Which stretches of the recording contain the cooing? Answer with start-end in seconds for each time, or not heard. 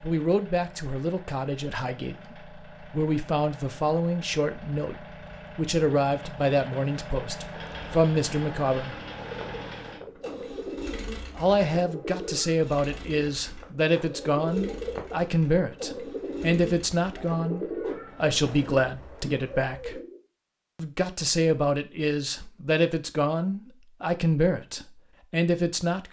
9.2-20.2.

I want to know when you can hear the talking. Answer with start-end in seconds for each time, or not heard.
0.0-8.9, 11.3-20.0, 20.8-26.0.